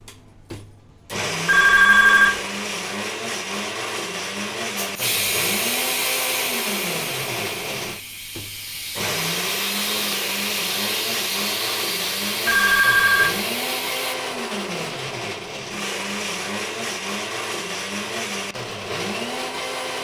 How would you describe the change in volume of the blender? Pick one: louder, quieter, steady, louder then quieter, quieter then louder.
steady.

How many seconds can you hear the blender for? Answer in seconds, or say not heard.
20 s.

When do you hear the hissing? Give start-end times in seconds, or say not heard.
4.8-14.2.